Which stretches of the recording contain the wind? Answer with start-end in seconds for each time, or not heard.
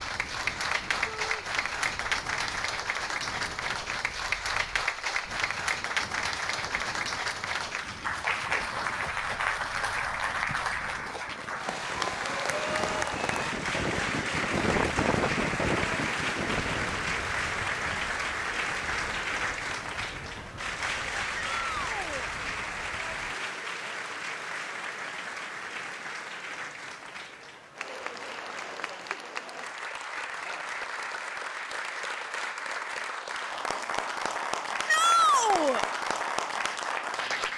0.0-23.4.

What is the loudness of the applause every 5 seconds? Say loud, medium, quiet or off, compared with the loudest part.
loud, loud, loud, loud, loud, medium, loud, loud.